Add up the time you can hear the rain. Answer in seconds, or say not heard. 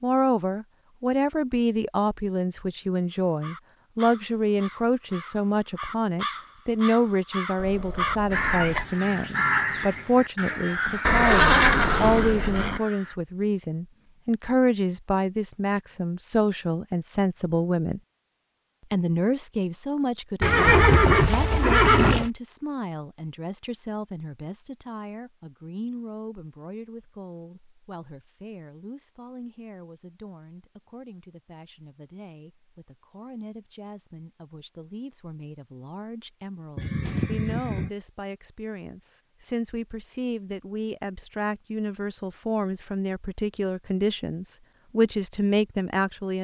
not heard.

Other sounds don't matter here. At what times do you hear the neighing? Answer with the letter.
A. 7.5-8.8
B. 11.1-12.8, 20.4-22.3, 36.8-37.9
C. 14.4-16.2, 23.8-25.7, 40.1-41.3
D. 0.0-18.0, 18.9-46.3
B.